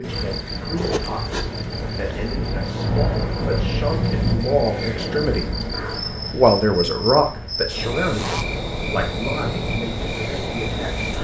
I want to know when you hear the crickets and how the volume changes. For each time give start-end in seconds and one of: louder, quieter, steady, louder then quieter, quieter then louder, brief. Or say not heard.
0.0-11.1 louder.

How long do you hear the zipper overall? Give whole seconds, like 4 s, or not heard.
2 s.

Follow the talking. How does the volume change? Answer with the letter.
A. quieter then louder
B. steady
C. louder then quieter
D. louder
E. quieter
C.